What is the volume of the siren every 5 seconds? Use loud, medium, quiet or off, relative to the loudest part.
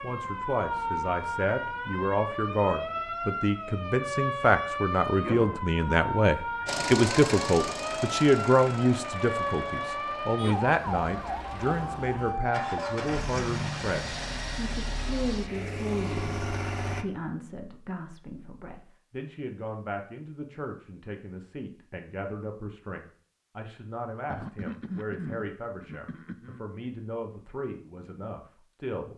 loud, loud, loud, off, off, off.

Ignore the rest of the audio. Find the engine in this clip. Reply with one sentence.
You can hear the engine from 6.7 to 17.1 s.